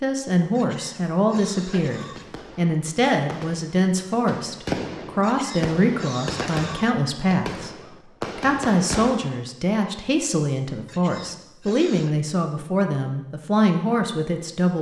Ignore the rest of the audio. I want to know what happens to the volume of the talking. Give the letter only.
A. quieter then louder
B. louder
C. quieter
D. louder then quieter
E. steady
E.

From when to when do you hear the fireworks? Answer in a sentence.
You can hear the fireworks from 1.6 to 9.4 s.